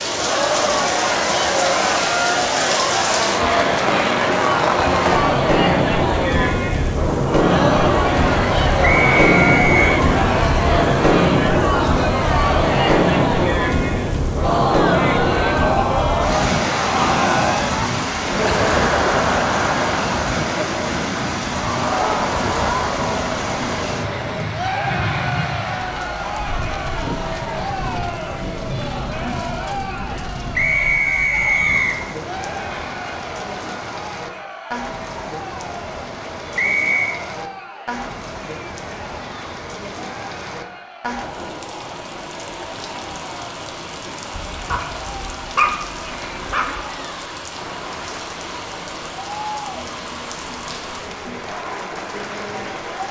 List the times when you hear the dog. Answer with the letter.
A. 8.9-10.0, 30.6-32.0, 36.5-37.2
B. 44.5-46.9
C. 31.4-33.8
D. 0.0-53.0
B.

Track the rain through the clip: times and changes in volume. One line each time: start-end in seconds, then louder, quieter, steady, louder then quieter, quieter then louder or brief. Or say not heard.
0.0-53.0 quieter.